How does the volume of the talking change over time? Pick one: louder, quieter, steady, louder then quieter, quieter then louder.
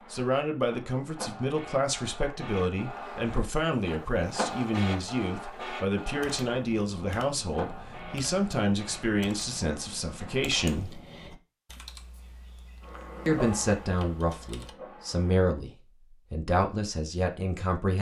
steady.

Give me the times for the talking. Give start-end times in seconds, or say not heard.
0.1-11.0, 13.2-17.9.